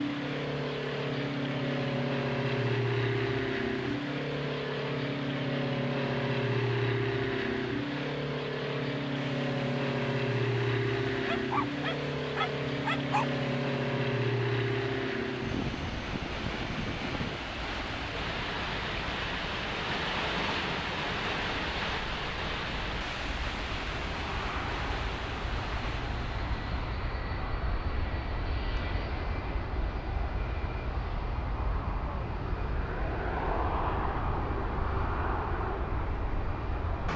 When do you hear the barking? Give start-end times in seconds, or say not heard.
11.2-13.4.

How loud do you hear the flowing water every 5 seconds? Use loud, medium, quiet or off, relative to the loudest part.
medium, medium, medium, loud, loud, medium, off, off.